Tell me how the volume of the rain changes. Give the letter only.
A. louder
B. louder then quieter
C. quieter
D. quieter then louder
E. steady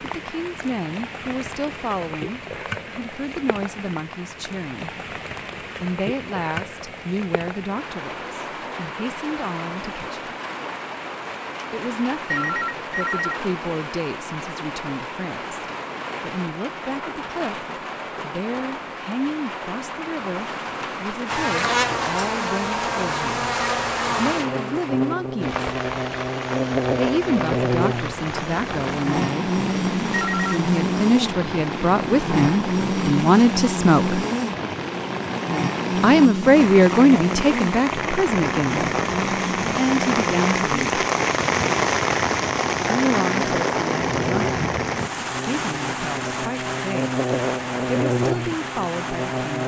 A.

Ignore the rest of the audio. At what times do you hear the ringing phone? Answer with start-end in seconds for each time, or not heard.
12.3-13.3, 30.1-30.6.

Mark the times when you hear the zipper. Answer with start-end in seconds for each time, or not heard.
not heard.